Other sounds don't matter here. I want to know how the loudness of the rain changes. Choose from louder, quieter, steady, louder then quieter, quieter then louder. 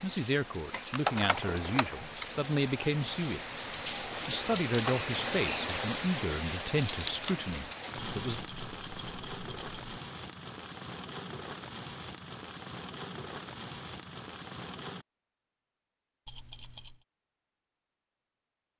louder then quieter.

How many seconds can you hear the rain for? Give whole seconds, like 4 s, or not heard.
15 s.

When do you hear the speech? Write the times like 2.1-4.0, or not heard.
0.0-8.3.